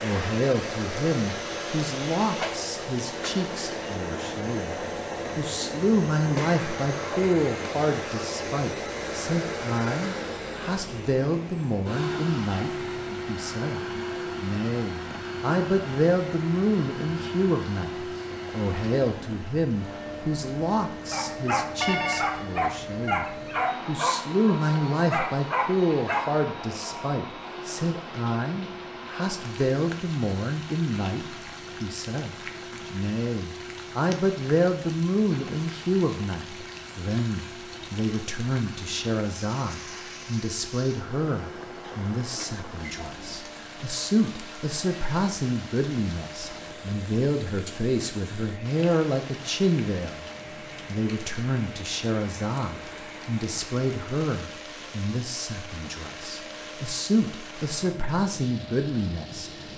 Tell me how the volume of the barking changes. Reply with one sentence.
The loudness of the barking goes down, then up.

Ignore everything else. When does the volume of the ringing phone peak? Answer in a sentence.
The volume of the ringing phone peaks at 22 seconds.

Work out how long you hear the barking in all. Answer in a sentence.
You can hear the barking for 5 seconds altogether.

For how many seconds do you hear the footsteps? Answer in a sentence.
The footsteps can't be heard in this clip.